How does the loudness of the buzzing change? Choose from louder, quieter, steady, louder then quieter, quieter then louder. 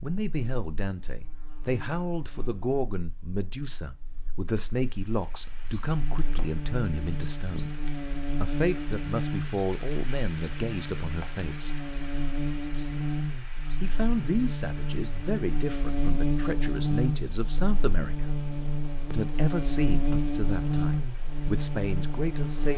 louder.